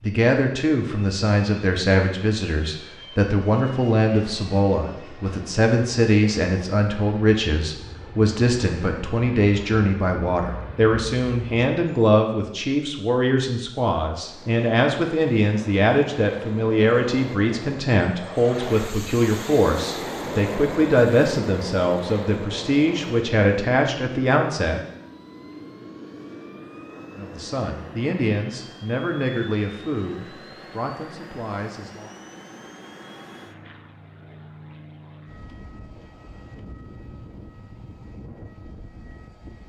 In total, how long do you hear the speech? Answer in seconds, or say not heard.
30 s.